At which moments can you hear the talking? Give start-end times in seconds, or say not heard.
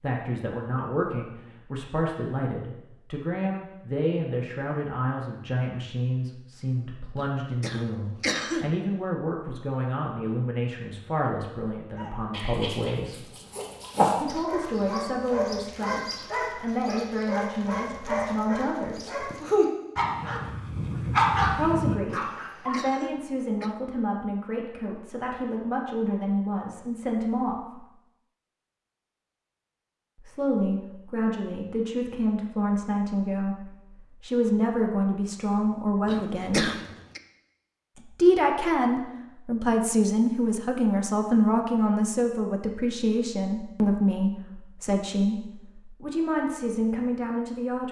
0.0-13.2, 14.2-19.3, 21.5-27.9, 30.1-36.7, 38.0-47.8.